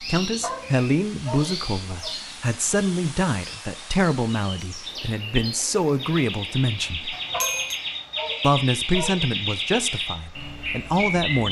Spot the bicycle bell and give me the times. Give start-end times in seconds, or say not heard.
7.1-7.8.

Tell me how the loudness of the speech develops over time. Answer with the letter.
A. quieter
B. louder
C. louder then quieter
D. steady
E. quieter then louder
D.